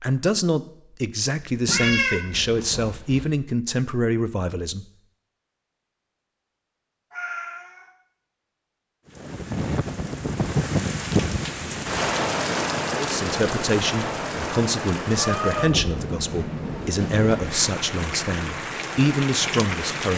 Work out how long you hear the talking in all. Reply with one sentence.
You can hear the talking for 12 seconds altogether.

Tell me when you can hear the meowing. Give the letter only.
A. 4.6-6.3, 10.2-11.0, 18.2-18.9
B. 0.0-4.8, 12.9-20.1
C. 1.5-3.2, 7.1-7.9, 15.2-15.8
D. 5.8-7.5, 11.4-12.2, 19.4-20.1
C.